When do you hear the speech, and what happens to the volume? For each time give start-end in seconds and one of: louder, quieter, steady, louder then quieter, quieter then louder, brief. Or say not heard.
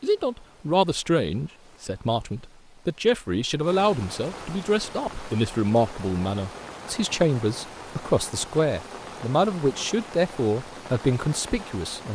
0.0-12.1 steady.